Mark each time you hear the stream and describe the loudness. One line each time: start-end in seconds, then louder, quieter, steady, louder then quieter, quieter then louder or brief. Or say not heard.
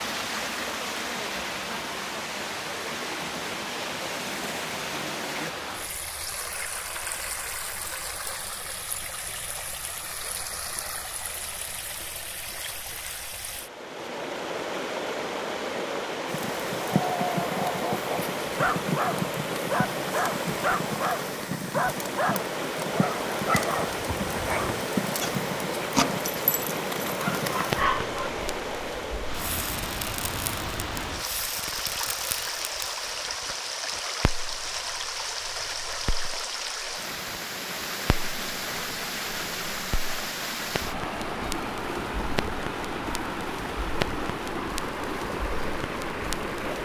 0.0-46.8 steady.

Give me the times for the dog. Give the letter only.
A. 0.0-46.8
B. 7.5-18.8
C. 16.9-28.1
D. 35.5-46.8
C.